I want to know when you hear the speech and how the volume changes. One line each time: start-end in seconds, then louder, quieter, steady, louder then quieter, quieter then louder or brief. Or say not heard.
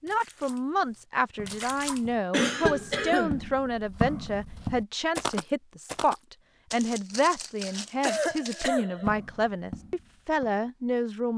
0.0-11.3 steady.